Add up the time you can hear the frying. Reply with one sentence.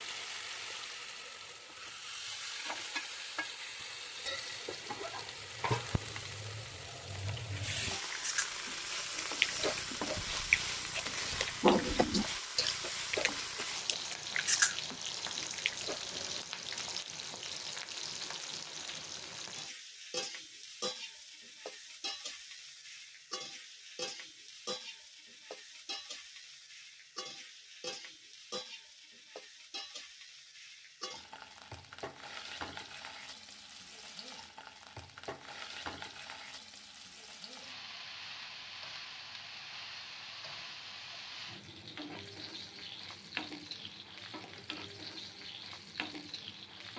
The frying can be heard for 47 seconds in total.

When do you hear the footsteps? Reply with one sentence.
The footsteps can't be heard in this clip.